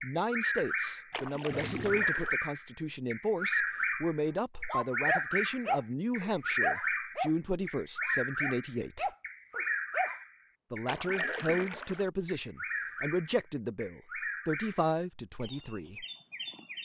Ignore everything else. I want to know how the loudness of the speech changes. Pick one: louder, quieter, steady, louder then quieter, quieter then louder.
steady.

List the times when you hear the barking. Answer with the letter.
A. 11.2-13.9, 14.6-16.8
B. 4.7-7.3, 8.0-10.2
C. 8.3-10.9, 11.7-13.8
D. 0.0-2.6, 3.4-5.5
B.